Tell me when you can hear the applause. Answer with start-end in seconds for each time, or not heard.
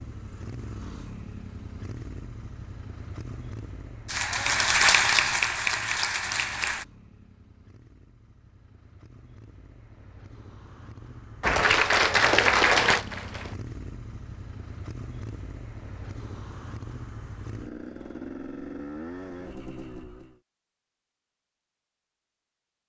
4.0-6.8, 11.4-13.6.